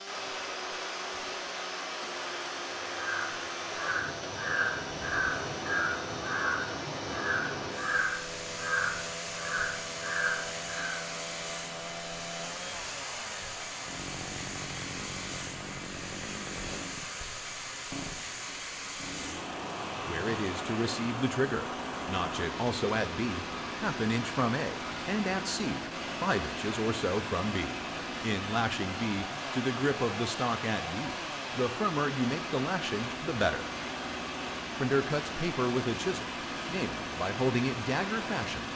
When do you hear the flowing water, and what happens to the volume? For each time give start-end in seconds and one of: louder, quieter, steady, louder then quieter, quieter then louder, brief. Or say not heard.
0.0-38.7 steady.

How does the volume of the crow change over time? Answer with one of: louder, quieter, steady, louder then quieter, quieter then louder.
steady.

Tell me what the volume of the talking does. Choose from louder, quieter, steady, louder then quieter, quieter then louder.
steady.